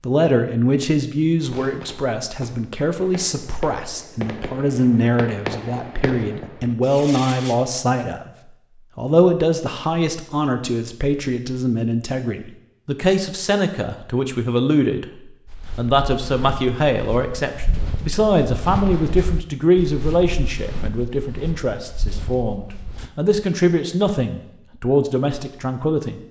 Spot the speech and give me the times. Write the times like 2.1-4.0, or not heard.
0.0-8.3, 8.9-26.2.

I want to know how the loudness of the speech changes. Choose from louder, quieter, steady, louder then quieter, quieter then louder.
steady.